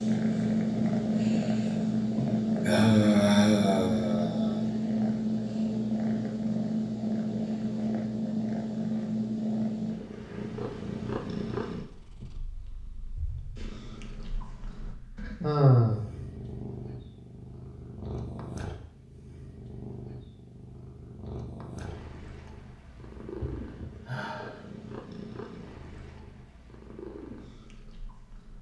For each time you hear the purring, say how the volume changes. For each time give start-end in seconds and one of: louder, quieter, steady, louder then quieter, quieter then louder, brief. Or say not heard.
0.0-28.5 quieter.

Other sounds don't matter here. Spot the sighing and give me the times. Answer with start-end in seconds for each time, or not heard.
2.1-4.7, 15.4-16.1, 22.4-24.6.